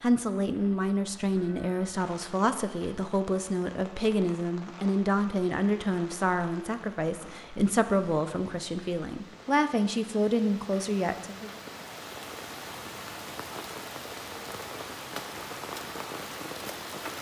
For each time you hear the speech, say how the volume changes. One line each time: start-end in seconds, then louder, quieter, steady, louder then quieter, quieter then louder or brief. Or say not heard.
0.0-11.5 steady.